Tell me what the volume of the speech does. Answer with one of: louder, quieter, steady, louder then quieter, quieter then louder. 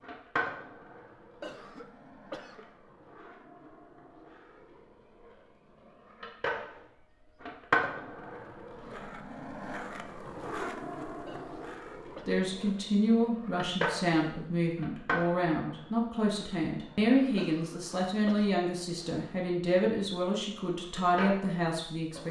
steady.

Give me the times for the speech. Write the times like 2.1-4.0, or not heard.
12.2-22.2.